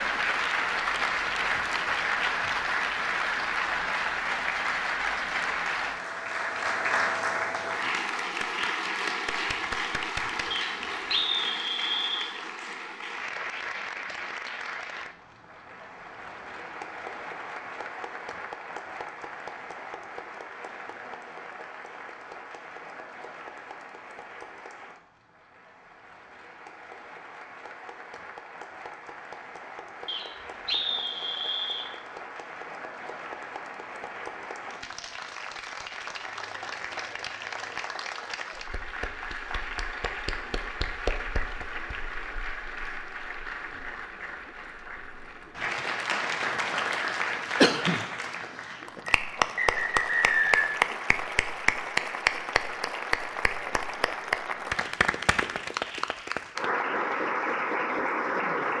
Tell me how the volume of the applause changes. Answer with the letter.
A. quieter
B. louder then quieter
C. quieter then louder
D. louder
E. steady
C.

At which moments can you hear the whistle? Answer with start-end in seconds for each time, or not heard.
10.5-12.3, 30.1-31.9, 49.0-50.8.